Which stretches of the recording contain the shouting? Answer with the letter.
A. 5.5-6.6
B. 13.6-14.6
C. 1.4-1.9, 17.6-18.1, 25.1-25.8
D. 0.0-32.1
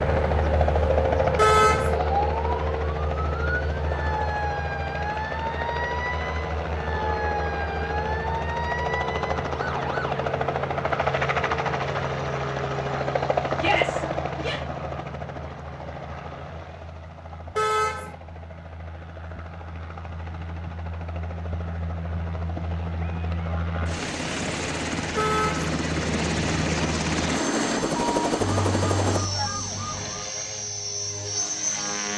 B.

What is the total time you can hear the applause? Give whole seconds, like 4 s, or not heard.
not heard.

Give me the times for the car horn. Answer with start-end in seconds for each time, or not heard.
1.4-1.9, 17.6-18.1, 25.1-25.8.